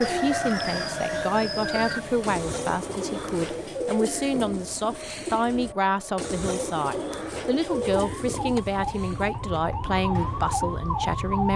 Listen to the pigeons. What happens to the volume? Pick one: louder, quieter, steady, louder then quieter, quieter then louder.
steady.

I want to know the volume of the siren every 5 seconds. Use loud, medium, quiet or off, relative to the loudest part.
medium, medium, loud.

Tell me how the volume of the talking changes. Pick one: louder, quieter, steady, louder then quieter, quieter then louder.
steady.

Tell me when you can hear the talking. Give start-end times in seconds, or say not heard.
0.0-11.5.